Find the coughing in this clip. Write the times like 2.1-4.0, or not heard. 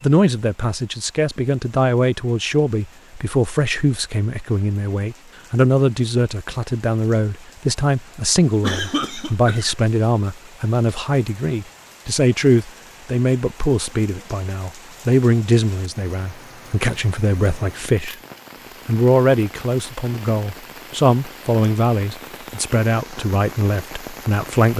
8.6-9.8.